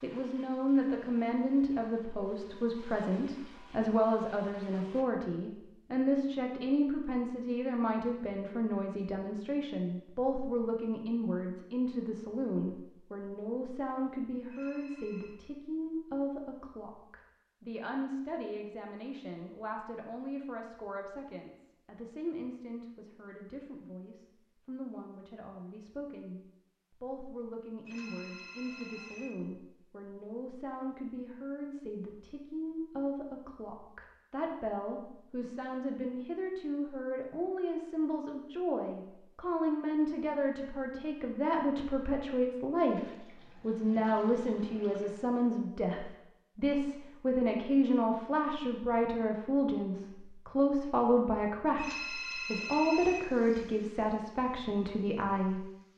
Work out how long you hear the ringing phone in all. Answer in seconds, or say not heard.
4 s.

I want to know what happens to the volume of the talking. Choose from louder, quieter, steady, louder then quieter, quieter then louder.
quieter then louder.